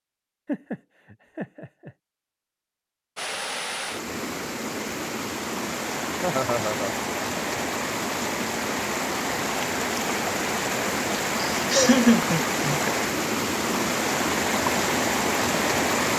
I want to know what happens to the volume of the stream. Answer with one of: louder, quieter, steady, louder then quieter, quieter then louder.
louder.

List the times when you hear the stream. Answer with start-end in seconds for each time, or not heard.
3.1-16.1.